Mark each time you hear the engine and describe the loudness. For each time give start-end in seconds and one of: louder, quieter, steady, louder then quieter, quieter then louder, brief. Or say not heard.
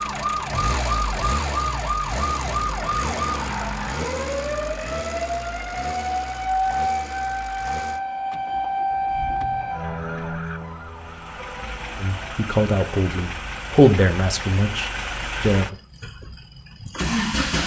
0.0-17.6 quieter then louder.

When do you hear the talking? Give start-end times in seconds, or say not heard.
12.0-15.8.